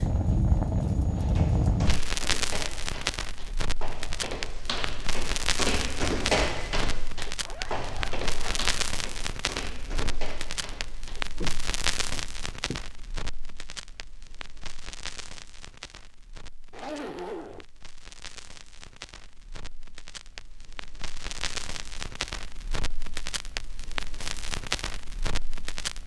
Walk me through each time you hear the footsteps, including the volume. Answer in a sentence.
You can hear the footsteps from 1.1 to 12.8 s, getting louder then quieter.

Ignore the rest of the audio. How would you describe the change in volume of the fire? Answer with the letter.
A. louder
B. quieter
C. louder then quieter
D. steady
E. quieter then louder
E.